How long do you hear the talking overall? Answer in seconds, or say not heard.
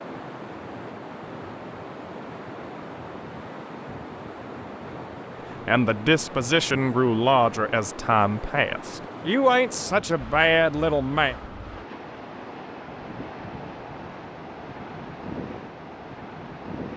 6 s.